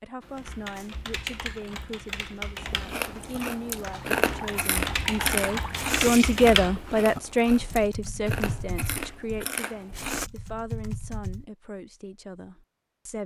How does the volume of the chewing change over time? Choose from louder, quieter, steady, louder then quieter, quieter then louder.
quieter.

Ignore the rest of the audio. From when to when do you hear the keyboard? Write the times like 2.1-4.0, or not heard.
0.2-11.4.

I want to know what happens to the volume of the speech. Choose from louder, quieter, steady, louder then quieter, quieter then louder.
louder then quieter.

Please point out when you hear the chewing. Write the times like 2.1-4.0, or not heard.
2.6-10.3.